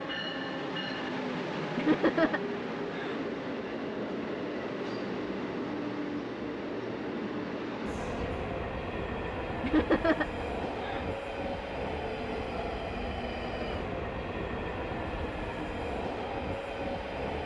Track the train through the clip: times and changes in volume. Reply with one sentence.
You can hear the train from 0.0 to 17.4 s, at a steady volume.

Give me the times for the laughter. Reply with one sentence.
The laughter can be heard from 1.8 to 3.3 s and from 9.6 to 11.2 s.